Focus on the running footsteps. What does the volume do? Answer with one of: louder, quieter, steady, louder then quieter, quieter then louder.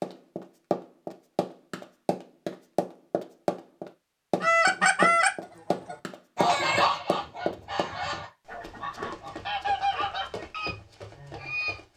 quieter.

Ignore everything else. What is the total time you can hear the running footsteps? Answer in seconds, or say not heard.
12 s.